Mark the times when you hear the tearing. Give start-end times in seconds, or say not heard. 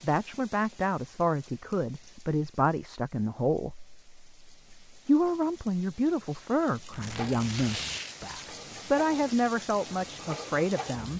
6.9-8.5.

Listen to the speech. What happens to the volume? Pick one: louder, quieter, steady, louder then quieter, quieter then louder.
steady.